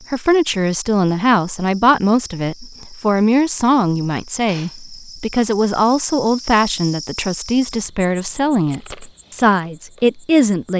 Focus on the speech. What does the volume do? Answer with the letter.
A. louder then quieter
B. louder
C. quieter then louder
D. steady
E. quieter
D.